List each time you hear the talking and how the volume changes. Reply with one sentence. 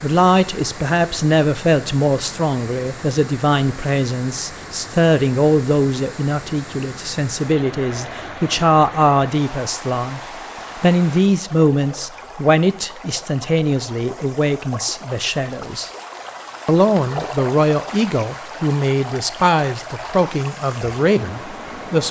You can hear the talking from 0.0 to 15.9 s, at a steady volume; and from 16.6 to 22.0 s, at a steady volume.